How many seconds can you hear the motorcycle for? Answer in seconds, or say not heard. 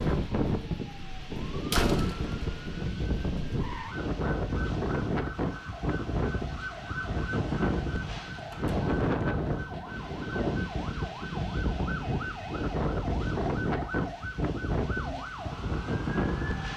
not heard.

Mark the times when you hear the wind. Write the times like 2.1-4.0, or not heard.
0.0-16.7.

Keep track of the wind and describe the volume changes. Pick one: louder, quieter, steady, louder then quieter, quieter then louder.
steady.